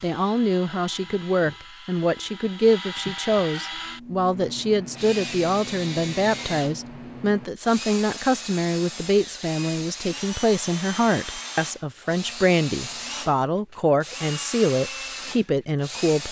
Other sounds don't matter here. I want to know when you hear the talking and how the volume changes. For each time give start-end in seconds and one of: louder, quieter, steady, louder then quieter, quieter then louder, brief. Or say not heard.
0.0-16.2 steady.